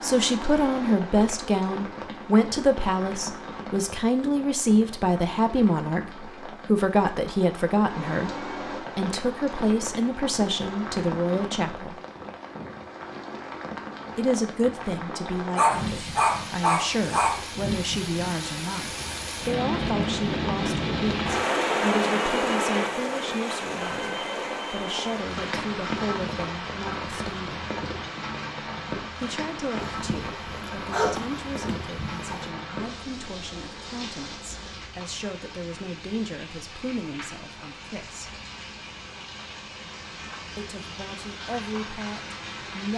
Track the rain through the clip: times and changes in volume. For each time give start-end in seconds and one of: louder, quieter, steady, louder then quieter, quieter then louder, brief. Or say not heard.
0.0-42.9 louder then quieter.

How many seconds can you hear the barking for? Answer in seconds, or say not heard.
5 s.